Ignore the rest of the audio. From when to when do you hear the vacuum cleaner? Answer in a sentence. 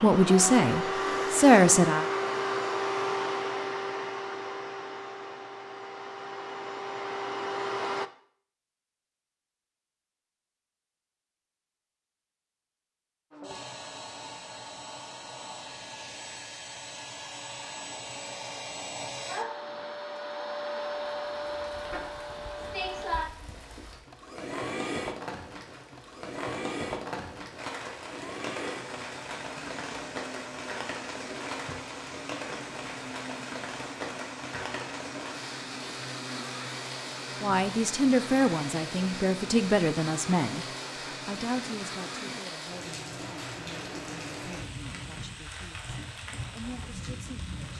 You can hear the vacuum cleaner from 0.0 to 8.1 s and from 13.3 to 42.4 s.